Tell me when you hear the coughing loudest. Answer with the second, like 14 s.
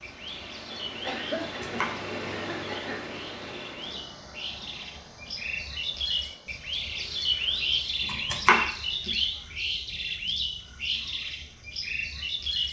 1 s.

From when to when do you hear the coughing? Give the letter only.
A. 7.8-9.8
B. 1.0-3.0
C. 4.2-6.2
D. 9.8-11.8
B.